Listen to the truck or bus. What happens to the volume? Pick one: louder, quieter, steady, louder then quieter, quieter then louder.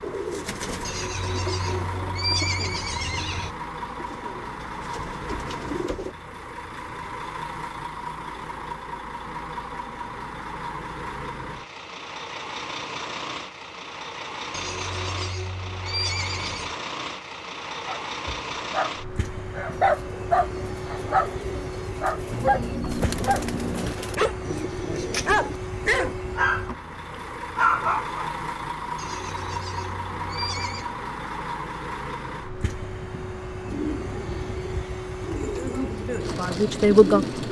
steady.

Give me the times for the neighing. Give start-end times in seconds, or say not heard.
0.8-3.5, 14.5-16.8, 28.9-30.9.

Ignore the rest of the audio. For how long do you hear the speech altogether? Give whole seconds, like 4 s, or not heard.
2 s.